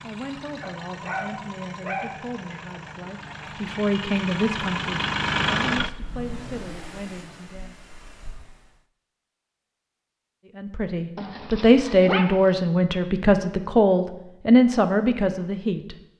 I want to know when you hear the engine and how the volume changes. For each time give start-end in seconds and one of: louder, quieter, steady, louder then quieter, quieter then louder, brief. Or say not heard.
0.0-8.8 louder then quieter.